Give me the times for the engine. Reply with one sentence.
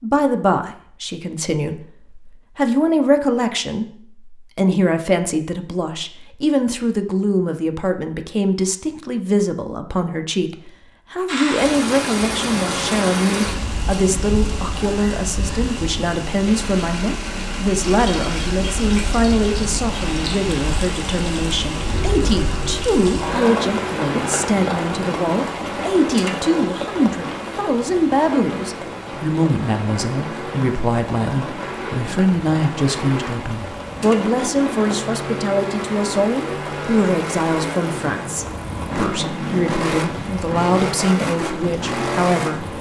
You can hear the engine from 16.3 to 42.7 s.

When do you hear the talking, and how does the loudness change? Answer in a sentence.
You can hear the talking from 0.0 to 42.7 s, at a steady volume.